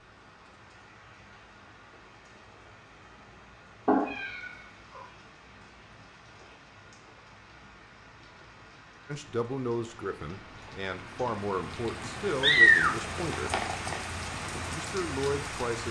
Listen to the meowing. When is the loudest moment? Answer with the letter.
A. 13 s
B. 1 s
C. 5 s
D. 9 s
A.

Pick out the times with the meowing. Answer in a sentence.
The meowing can be heard from 3.9 to 5.0 s and from 12.2 to 14.0 s.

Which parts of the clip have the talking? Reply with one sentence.
The talking can be heard from 9.1 to 13.6 s and from 14.7 to 15.8 s.